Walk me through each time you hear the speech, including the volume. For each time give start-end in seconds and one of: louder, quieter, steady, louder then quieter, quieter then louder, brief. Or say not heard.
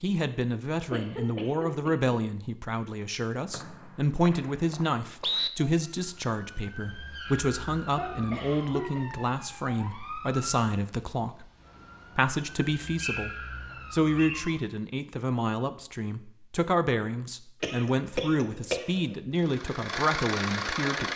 0.0-11.4 steady
12.2-21.1 steady.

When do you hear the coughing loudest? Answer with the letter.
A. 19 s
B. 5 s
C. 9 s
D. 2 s
A.